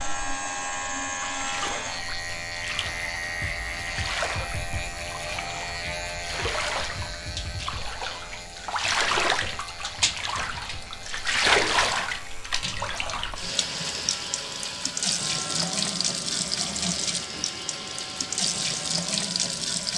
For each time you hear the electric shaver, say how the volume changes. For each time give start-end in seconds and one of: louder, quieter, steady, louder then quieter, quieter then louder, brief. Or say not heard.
0.0-19.9 quieter.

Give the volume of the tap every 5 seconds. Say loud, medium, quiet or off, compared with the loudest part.
medium, loud, loud, loud.